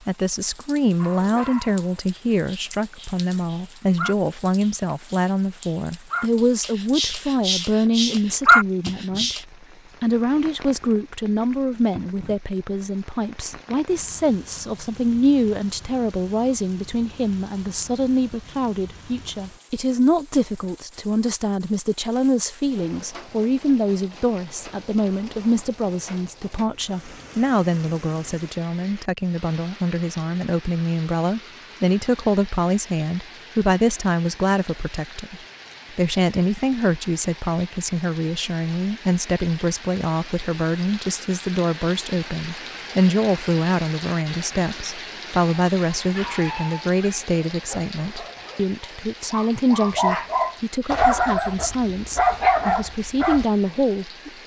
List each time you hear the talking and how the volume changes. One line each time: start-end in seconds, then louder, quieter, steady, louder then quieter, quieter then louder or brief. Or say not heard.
0.1-54.4 steady.